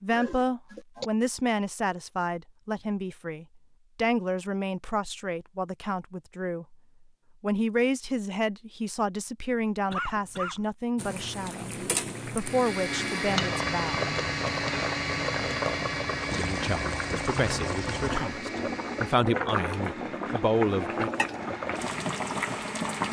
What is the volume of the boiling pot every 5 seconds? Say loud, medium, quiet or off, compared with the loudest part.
off, off, loud, loud, loud.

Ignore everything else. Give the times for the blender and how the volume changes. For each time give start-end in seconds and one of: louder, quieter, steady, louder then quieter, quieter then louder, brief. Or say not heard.
12.3-23.0 quieter.